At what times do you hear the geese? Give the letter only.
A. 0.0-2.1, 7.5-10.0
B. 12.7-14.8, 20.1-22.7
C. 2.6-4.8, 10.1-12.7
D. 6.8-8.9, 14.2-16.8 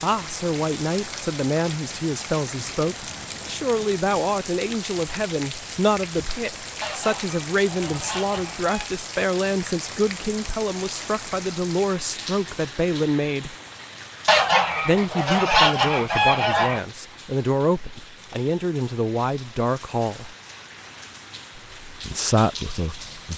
D.